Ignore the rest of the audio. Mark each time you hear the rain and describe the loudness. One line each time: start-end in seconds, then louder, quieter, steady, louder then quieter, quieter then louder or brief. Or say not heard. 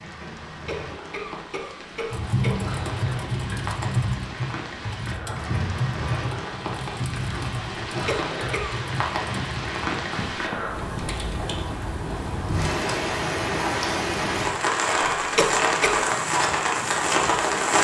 0.0-17.7 louder.